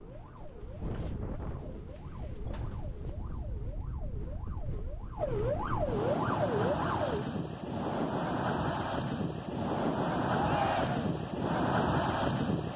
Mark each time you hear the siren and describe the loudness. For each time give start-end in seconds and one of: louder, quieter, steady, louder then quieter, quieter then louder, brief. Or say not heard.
0.0-7.2 louder.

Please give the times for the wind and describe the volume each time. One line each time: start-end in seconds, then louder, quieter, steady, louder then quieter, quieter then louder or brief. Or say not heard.
0.0-12.7 louder.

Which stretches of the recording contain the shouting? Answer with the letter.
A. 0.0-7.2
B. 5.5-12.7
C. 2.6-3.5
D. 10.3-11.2
D.